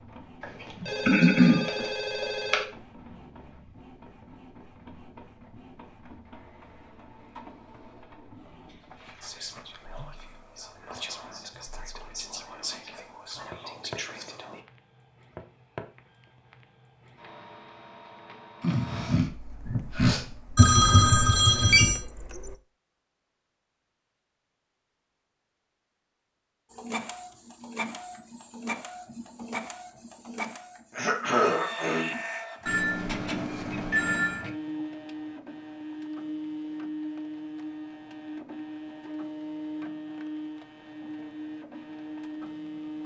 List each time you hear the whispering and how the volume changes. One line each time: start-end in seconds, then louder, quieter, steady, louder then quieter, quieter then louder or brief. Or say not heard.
9.2-14.6 louder.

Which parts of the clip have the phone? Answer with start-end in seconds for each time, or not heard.
0.4-2.6, 20.6-21.9, 32.6-34.4.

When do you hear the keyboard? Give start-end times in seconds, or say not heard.
not heard.